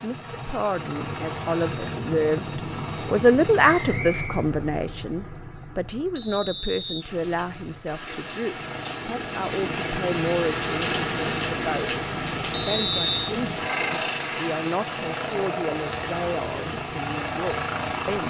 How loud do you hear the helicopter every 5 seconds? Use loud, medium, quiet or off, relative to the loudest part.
loud, medium, loud, loud.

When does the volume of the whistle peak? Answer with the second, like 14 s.
13 s.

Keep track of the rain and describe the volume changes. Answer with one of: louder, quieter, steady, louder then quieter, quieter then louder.
louder then quieter.